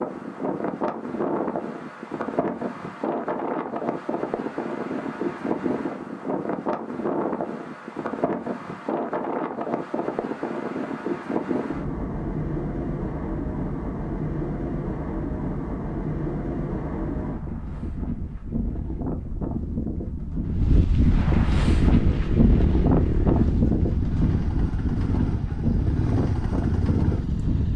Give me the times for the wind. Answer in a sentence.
The wind can be heard from 0.0 to 27.7 s.